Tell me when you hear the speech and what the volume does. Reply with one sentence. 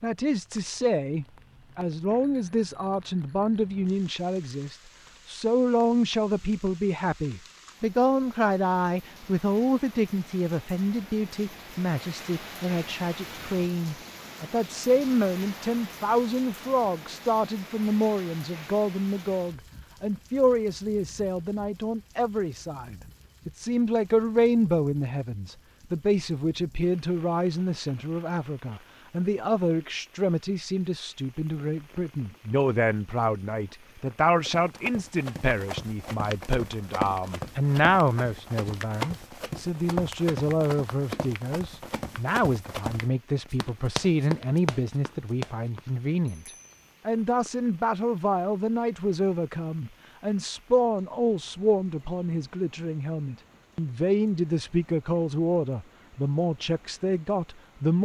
You can hear the speech from 0.0 to 58.0 s, at a steady volume.